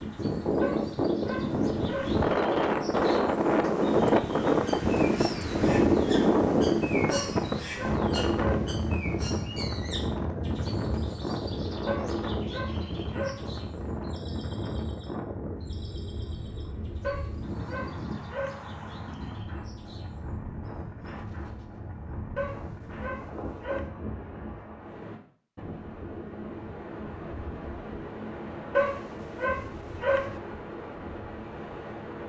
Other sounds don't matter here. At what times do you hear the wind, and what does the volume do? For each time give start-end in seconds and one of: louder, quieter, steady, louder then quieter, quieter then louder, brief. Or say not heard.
0.0-32.2 quieter.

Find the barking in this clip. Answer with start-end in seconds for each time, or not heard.
0.6-2.2, 7.1-8.8, 11.8-13.5, 17.0-18.6, 22.4-23.9, 28.8-30.4.